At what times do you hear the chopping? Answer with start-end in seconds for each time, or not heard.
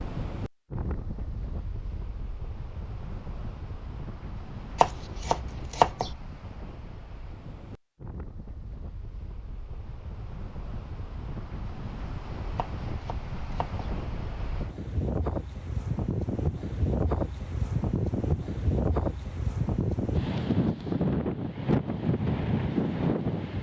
4.8-6.2, 12.6-13.8.